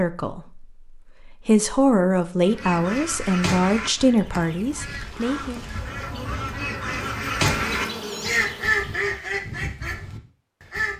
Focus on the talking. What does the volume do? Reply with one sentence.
The volume of the talking goes up, then down.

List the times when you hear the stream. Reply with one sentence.
You can't hear the stream here.